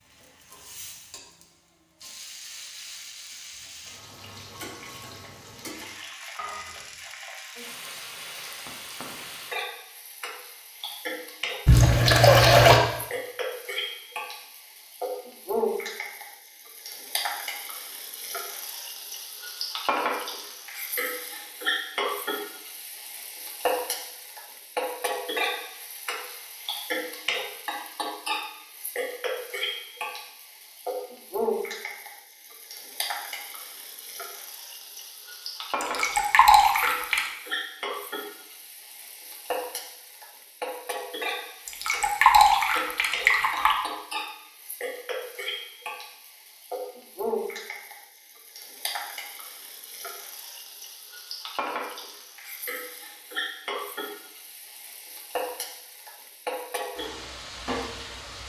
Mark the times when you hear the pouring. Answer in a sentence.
The pouring can be heard from 11.7 to 12.8 s, from 35.8 to 37.3 s and from 41.6 to 43.8 s.